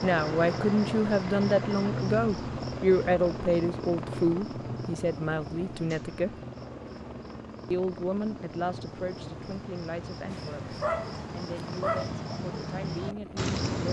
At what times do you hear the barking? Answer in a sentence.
The barking can be heard from 10.3 to 12.2 s.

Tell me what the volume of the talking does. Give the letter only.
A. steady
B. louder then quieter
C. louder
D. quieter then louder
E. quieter
E.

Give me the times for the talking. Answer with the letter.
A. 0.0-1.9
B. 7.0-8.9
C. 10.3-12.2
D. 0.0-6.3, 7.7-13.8
D.